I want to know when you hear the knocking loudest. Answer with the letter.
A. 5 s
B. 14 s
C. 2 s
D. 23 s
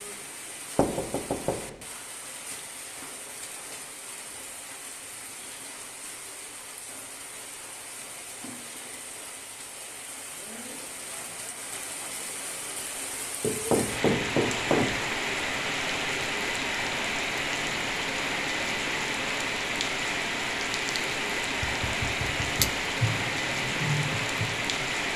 B.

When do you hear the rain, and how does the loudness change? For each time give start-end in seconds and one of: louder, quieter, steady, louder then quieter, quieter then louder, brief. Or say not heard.
0.0-25.1 louder.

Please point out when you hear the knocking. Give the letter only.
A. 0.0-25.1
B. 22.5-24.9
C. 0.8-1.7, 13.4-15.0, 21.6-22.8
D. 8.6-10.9
C.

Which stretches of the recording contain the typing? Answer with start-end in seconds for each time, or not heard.
22.5-24.9.